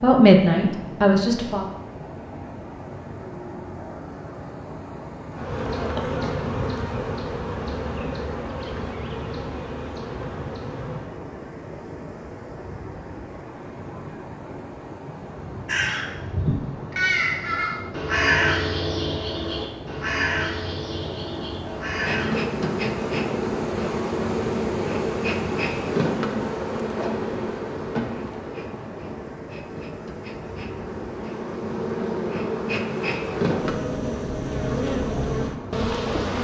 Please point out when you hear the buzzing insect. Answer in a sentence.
The buzzing insect can be heard from 5.3 to 11.2 s and from 21.9 to 36.3 s.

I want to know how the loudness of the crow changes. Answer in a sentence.
The volume of the crow goes down.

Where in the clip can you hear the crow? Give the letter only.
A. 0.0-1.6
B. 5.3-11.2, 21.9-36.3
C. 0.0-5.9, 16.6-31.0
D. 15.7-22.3
D.